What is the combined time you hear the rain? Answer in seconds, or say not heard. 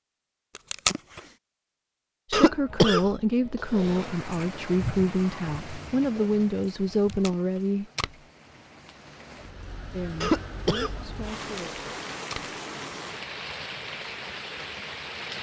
12 s.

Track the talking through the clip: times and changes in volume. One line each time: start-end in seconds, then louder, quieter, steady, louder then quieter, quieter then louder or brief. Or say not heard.
2.3-7.8 steady
9.9-11.7 brief.